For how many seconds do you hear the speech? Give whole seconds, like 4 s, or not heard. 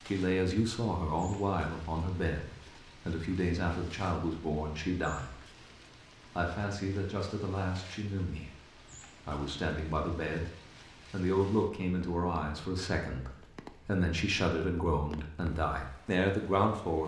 16 s.